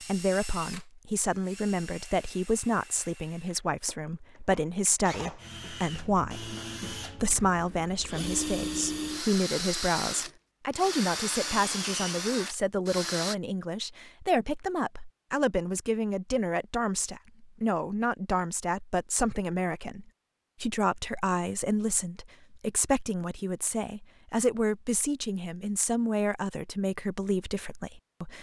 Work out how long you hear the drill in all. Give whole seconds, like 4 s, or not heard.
13 s.